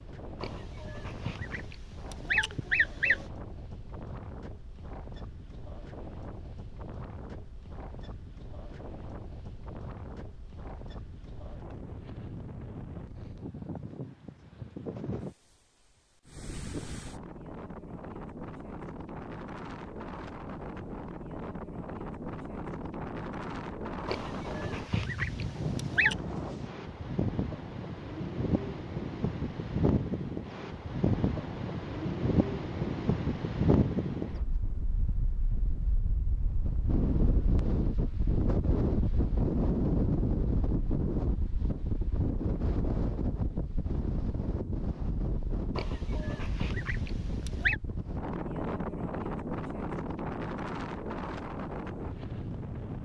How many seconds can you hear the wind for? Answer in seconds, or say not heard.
53 s.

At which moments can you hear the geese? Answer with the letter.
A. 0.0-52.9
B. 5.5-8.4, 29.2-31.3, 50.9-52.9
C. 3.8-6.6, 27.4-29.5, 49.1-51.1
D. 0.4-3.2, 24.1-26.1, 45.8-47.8
D.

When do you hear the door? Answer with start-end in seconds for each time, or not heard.
not heard.